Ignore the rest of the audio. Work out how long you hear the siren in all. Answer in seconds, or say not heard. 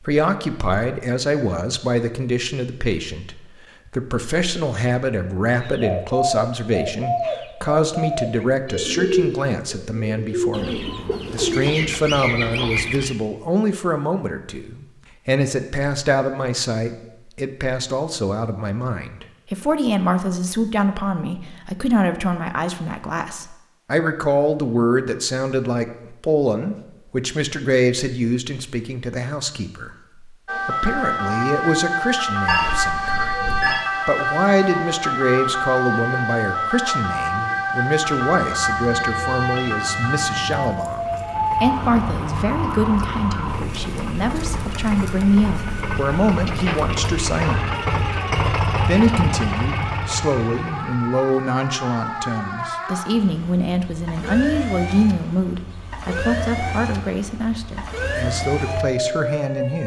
29 s.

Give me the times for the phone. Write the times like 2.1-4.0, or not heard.
32.5-33.9.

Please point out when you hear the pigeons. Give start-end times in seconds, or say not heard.
5.6-13.2.